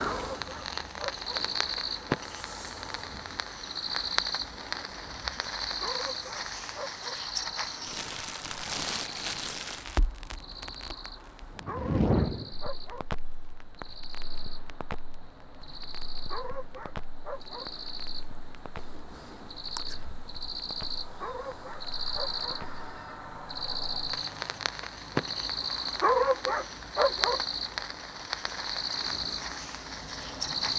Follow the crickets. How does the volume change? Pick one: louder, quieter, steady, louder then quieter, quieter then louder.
quieter then louder.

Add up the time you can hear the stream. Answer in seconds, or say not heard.
not heard.